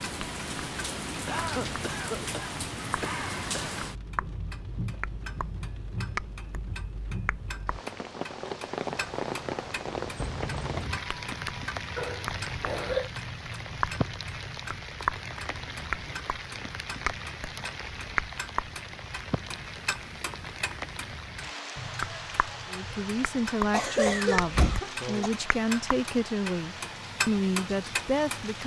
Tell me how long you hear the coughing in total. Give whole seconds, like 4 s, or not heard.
5 s.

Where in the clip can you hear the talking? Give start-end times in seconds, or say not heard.
22.7-28.6.